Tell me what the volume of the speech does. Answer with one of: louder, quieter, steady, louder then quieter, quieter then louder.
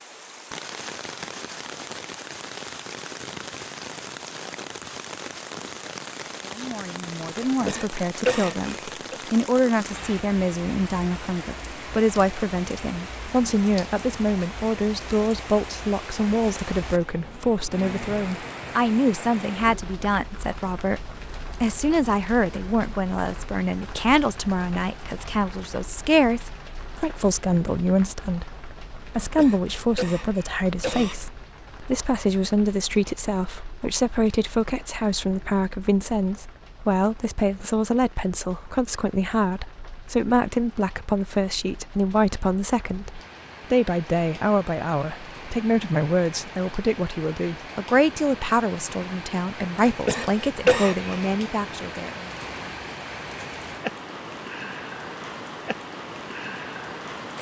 steady.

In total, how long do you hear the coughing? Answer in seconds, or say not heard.
5 s.